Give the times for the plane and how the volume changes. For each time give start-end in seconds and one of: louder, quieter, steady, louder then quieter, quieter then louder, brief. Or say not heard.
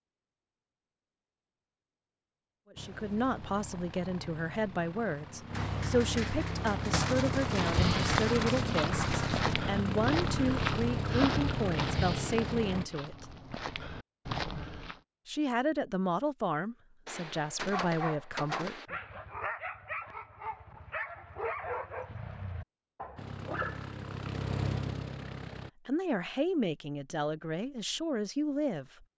2.8-12.8 louder
23.1-25.7 brief.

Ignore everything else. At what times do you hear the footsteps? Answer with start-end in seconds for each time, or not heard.
7.5-14.9.